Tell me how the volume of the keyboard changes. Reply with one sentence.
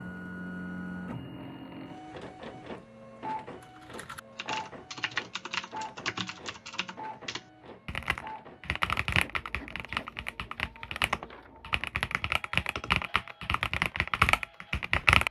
The loudness of the keyboard goes up.